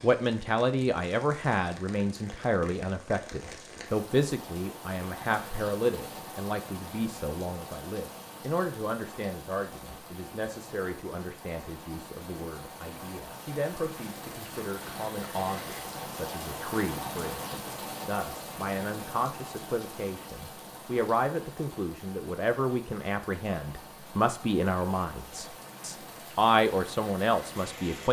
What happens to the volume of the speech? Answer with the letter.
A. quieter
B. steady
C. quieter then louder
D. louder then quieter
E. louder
C.